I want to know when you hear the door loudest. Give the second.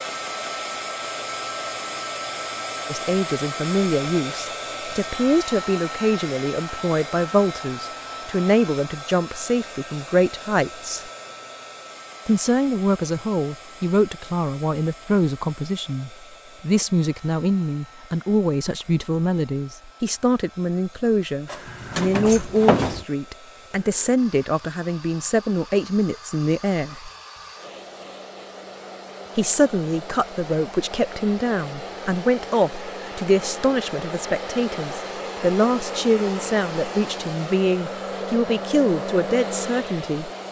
23 s.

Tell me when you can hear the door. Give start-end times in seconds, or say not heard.
21.4-23.1.